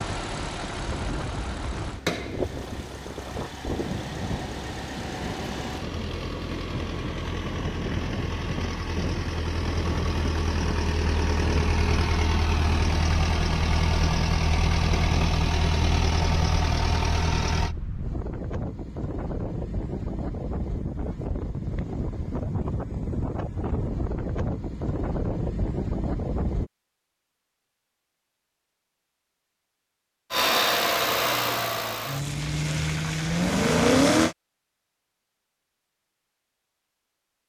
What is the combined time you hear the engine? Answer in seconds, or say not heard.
22 s.